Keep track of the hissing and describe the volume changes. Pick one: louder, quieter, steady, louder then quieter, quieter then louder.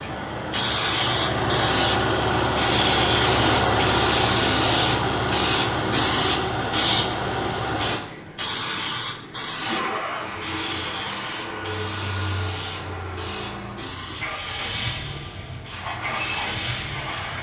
quieter.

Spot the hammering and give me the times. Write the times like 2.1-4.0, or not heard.
not heard.